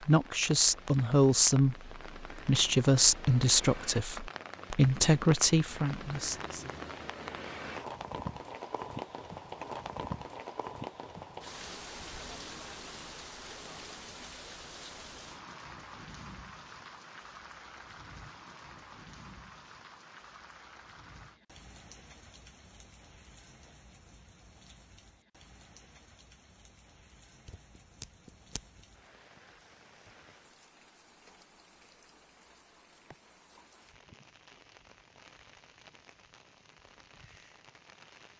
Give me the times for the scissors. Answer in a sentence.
You can hear the scissors from 27.4 to 28.8 s.